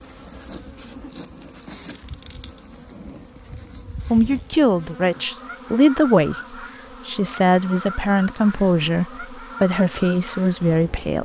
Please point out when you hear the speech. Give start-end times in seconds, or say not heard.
4.1-6.3, 7.0-11.1.